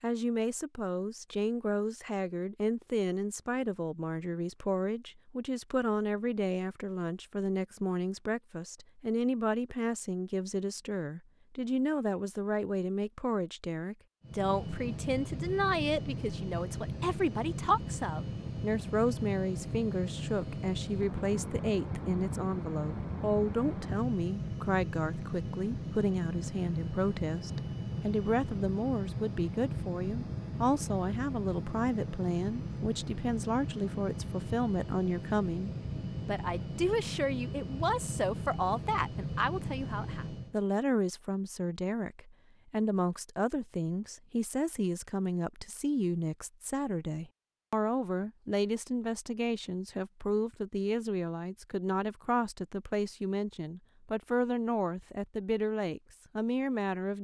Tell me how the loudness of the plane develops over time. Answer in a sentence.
The volume of the plane stays about the same.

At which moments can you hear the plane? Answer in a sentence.
You can hear the plane from 14.2 to 40.5 s.